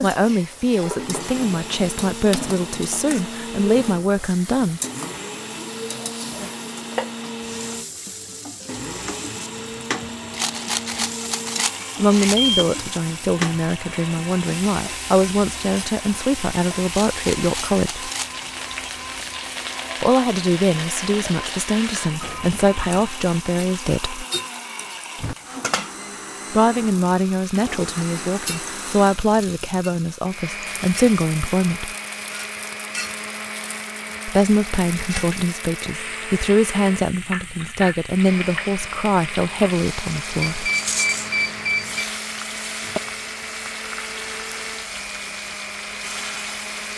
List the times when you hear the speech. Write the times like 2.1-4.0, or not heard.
0.0-4.8, 11.9-18.1, 20.0-24.2, 26.5-31.9, 34.2-40.7.